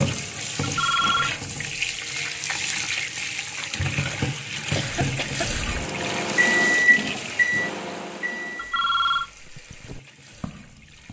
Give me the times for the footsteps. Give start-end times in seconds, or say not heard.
9.3-11.0.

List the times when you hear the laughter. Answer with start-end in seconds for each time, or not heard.
4.7-5.5.